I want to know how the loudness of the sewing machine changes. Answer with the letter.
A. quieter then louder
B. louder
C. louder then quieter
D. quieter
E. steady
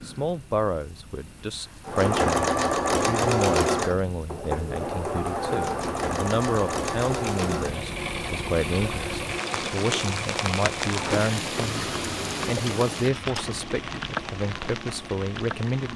D.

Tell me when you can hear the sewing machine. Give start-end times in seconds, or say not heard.
1.9-15.9.